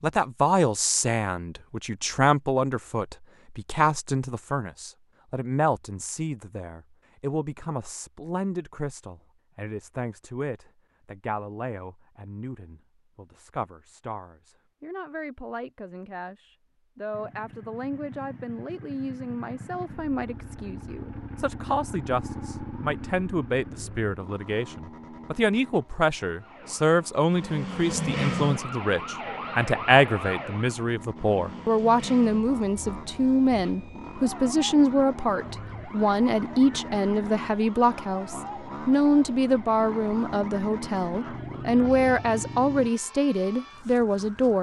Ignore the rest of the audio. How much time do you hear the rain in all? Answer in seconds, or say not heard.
not heard.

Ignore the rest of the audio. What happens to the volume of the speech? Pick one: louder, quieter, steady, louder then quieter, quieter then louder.
quieter then louder.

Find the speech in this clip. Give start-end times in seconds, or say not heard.
0.0-44.5.